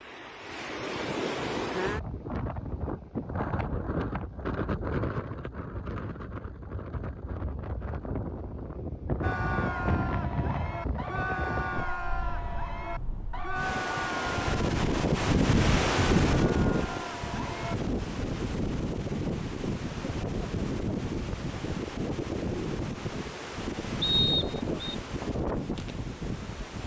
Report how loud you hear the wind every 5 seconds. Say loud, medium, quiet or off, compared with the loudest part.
medium, medium, medium, loud, medium, medium.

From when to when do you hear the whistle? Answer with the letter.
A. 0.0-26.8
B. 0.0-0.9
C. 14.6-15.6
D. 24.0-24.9
D.